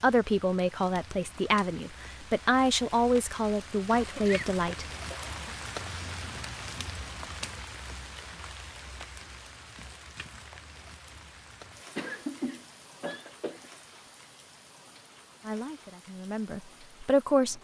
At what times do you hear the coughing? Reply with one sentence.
The coughing can be heard from 3.9 to 5.5 s and from 11.9 to 13.7 s.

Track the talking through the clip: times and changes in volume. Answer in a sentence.
You can hear the talking from 0.0 to 4.8 s, at a steady volume; and briefly from 15.4 to 17.5 s.